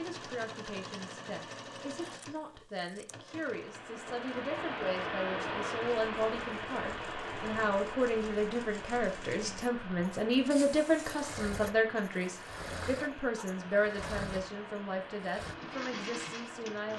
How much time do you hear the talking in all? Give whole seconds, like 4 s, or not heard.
17 s.